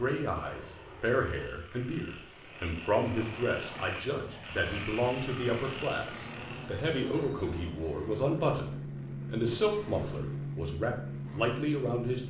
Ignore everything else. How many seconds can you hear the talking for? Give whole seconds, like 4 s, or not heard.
12 s.